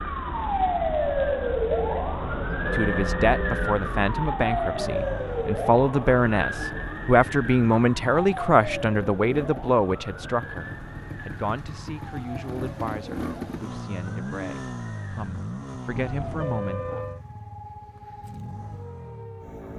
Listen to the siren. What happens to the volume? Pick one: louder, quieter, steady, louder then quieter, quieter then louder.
quieter.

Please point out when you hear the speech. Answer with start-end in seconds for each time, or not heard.
2.8-16.8.